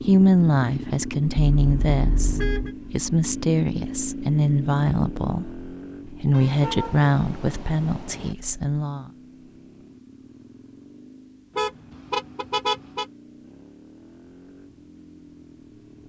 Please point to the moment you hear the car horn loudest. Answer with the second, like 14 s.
13 s.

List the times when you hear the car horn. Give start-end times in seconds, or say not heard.
1.6-2.8, 6.3-8.3, 11.6-13.1.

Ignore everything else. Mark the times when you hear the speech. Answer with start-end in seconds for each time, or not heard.
0.1-9.1.